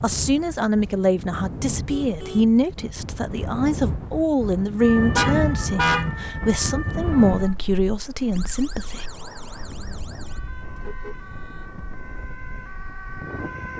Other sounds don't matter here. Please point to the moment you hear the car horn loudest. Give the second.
6 s.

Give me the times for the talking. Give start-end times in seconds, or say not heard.
0.0-9.1.